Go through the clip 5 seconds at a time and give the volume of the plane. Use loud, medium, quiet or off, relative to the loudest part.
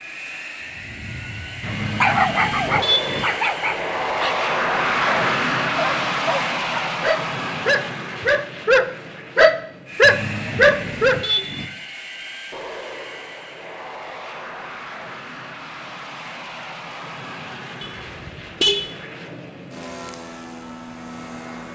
loud, loud, medium, medium, medium.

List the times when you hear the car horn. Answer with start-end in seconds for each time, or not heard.
1.6-3.2, 10.0-11.7, 17.8-18.9.